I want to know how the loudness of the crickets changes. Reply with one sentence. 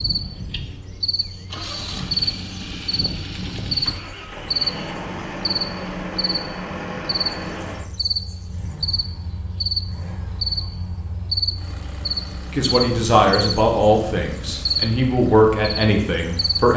The volume of the crickets stays about the same.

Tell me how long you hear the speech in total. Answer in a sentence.
You can hear the speech for 4 seconds altogether.